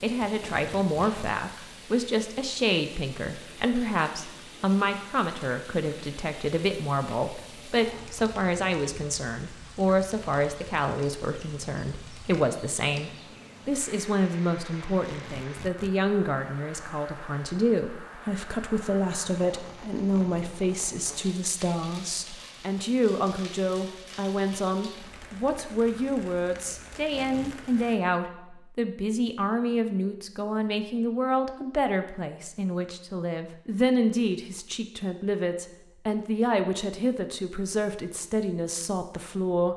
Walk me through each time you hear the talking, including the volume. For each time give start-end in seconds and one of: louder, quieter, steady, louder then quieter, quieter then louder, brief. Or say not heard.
0.0-39.7 steady.